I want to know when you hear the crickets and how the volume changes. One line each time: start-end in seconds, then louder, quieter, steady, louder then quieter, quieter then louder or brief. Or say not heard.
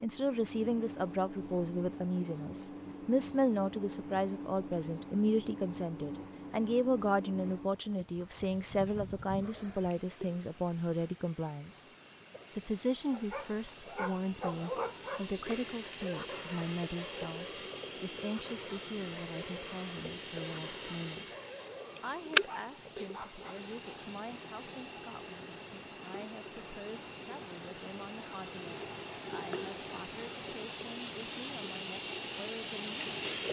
0.0-33.4 louder.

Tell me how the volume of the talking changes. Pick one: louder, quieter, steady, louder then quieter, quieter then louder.
quieter.